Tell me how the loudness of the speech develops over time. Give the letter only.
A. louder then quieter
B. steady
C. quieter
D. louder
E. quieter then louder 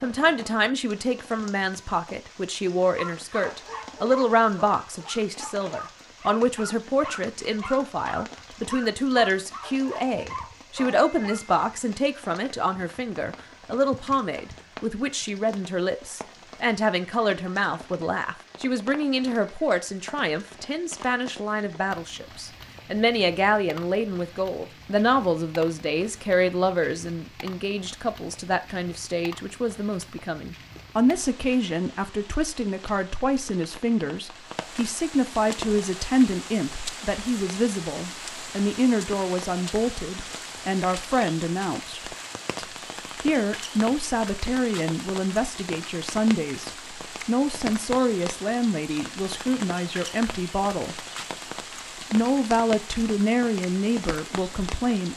B.